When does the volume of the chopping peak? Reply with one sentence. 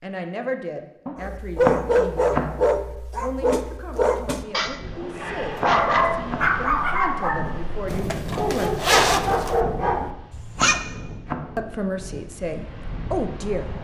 The volume of the chopping peaks at 2 seconds.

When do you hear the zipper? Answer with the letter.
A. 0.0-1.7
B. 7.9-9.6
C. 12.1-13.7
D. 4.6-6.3
B.